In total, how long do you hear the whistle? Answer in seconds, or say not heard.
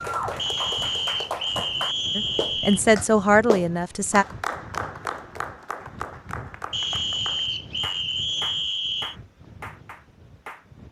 5 s.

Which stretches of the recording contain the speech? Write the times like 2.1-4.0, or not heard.
2.1-4.2.